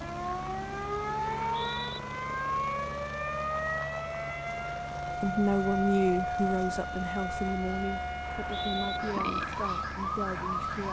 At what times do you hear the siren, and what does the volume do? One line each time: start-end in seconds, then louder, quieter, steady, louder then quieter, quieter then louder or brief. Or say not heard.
0.0-10.8 steady.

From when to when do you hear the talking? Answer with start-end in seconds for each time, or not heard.
5.2-10.8.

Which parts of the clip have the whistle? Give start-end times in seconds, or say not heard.
1.4-2.0, 8.2-9.0.